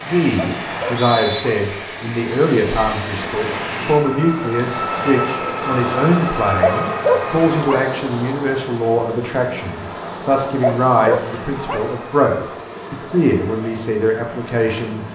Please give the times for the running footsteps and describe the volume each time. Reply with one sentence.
You can't hear the running footsteps here.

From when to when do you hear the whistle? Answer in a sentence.
You can hear the whistle from 0.7 to 1.4 s.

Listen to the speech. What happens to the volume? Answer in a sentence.
The loudness of the speech stays about the same.